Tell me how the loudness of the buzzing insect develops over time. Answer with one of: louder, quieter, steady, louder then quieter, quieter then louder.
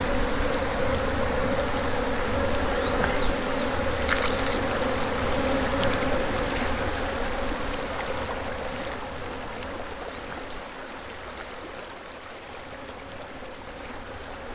quieter.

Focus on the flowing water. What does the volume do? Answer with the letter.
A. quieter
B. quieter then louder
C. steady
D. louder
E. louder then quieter
A.